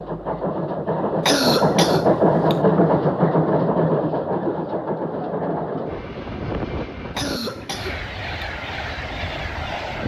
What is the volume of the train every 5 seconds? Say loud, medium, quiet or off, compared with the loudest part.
loud, medium.